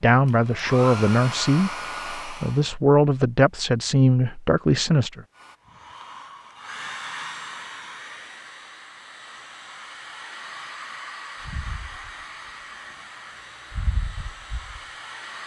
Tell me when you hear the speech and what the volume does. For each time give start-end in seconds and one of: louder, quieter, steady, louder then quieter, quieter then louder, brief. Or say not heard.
0.0-5.2 steady.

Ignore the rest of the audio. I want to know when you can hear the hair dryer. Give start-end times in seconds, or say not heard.
0.1-2.7, 5.3-15.4.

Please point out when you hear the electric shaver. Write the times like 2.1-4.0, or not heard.
11.4-12.5, 13.7-15.4.